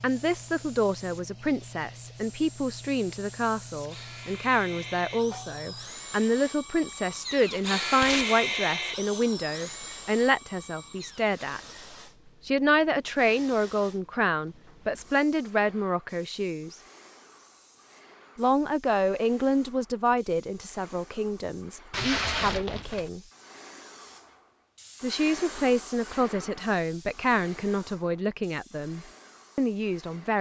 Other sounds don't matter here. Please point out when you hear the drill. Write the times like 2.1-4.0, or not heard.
0.0-11.4.